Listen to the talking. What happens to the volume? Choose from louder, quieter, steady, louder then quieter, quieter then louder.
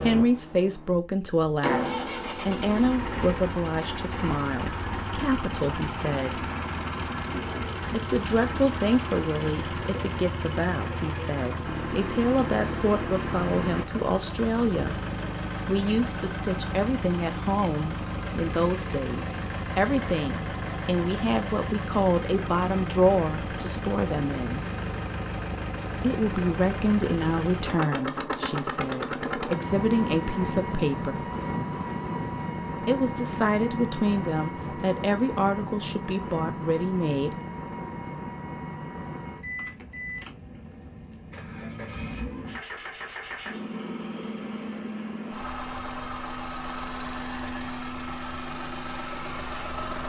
steady.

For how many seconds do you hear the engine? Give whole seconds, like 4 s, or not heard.
50 s.